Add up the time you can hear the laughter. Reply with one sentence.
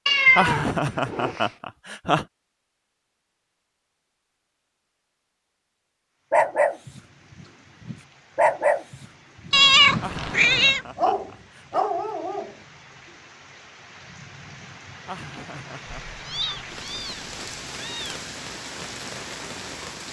You can hear the laughter for 5 seconds altogether.